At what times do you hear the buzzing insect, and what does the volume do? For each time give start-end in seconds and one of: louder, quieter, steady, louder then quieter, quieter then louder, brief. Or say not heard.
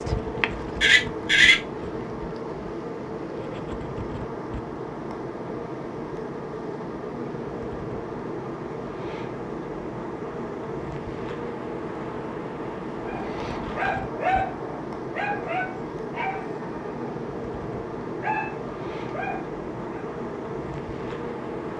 0.0-21.7 steady.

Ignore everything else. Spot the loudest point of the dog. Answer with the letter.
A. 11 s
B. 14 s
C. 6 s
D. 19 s
B.